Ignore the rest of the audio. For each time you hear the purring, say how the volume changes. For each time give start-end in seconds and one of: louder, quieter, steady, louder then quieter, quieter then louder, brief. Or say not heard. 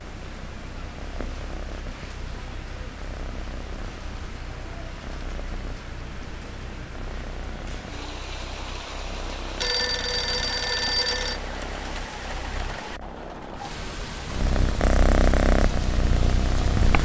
0.0-17.0 louder.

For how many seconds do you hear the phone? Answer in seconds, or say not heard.
2 s.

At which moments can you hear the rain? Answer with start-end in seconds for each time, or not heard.
0.0-17.0.